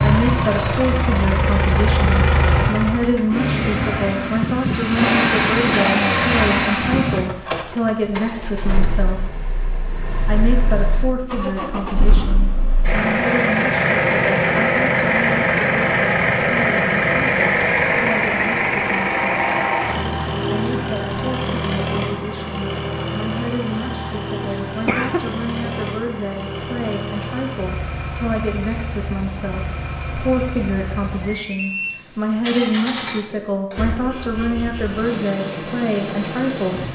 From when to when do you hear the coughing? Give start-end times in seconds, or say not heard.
24.4-25.3.